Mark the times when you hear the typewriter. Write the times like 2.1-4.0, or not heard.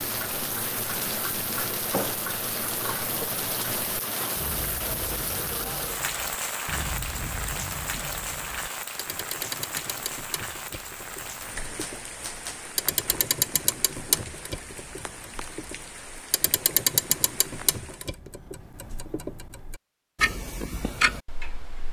11.8-13.2.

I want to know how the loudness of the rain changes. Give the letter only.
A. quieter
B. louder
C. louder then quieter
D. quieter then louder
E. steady
A.